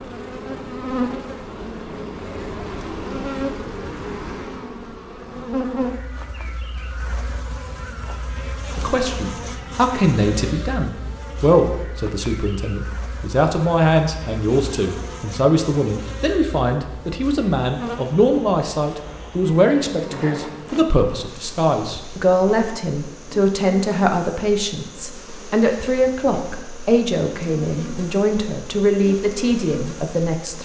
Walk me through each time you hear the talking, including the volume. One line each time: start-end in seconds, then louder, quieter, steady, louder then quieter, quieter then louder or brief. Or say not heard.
8.8-30.6 steady.